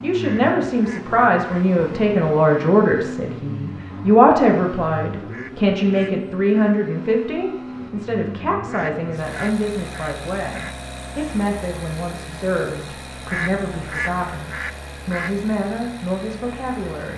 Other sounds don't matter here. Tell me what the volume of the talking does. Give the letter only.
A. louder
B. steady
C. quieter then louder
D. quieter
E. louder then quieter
D.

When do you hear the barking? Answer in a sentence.
The barking can't be heard in this clip.